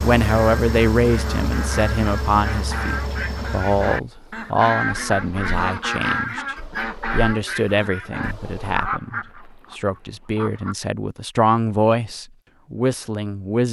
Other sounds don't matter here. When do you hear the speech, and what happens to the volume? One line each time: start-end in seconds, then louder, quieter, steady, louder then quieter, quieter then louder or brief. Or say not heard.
0.0-13.6 quieter then louder.